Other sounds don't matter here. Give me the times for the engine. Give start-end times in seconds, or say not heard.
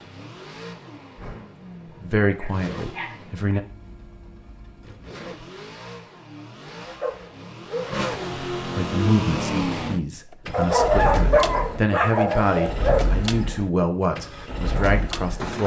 0.0-15.6.